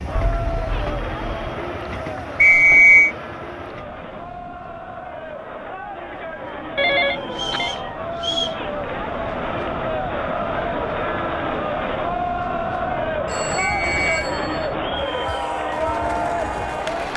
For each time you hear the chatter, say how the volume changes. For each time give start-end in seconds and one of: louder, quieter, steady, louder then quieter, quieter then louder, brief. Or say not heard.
0.0-17.1 louder.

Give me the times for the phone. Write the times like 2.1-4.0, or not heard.
0.1-1.4, 6.8-7.8, 13.2-14.8.